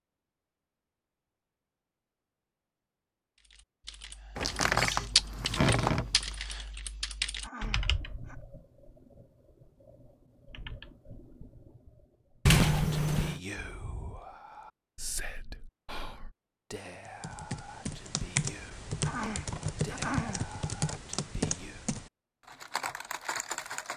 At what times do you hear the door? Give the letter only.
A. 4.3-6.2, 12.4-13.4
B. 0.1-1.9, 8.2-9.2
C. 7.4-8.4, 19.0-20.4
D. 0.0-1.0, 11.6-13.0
A.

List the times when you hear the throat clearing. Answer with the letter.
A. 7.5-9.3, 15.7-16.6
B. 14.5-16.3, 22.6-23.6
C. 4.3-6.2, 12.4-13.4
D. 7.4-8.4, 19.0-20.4
D.